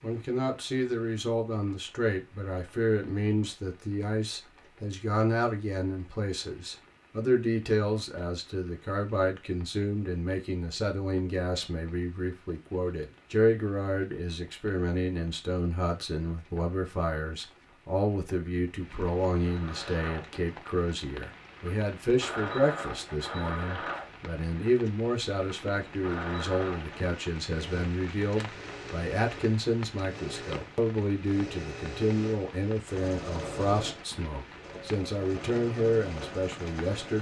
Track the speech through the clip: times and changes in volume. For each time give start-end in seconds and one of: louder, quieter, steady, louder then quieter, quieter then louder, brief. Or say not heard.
0.0-37.1 steady.